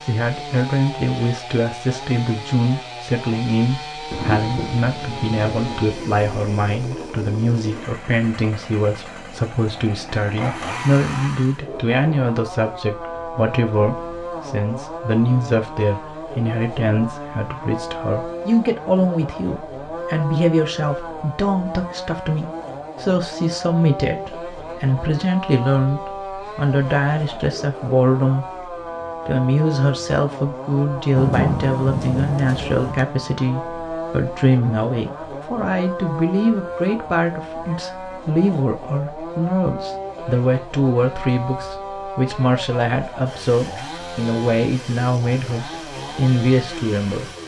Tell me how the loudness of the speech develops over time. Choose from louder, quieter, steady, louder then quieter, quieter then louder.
steady.